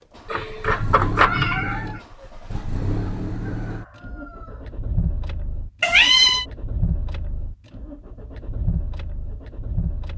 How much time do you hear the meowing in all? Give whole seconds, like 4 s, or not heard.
2 s.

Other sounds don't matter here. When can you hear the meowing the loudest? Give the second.
6 s.